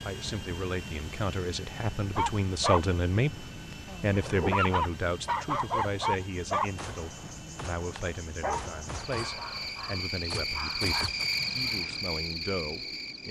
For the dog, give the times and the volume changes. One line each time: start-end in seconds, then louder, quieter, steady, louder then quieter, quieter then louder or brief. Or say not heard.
2.1-12.0 louder then quieter.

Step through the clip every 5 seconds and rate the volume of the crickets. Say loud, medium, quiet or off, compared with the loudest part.
off, medium, loud.